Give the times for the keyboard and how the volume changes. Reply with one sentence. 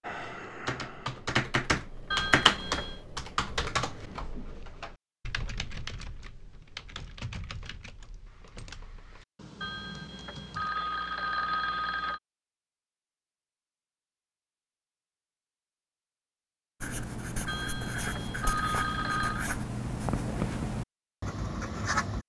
You can hear the keyboard from 0.0 to 10.7 s, getting quieter.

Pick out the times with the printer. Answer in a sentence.
You can't hear the printer here.